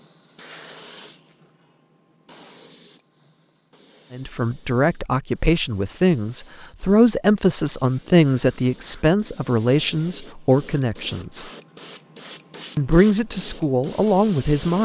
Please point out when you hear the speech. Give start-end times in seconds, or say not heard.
4.1-11.4, 12.8-14.8.